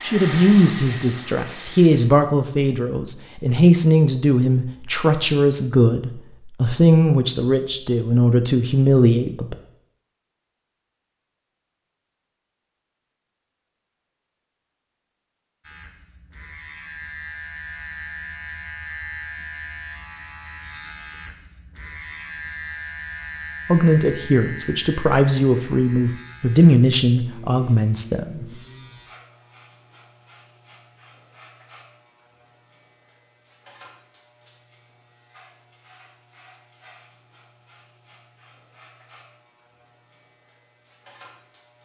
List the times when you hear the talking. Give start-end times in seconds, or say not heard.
0.0-9.6, 23.6-28.4.